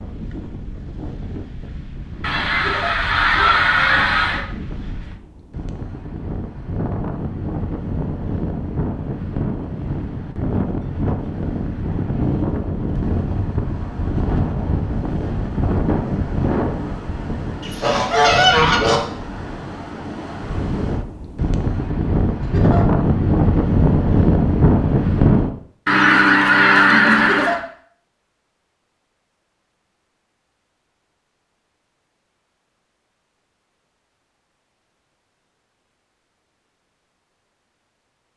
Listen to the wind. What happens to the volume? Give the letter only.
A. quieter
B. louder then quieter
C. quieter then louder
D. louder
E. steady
D.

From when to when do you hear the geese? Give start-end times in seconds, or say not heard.
2.2-4.5, 17.6-19.1, 25.9-27.6.